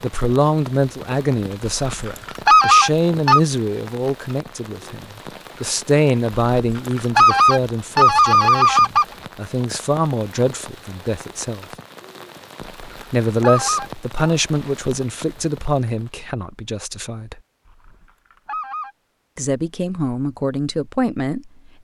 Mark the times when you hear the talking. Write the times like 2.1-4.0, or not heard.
0.0-11.7, 13.1-17.4, 19.4-21.8.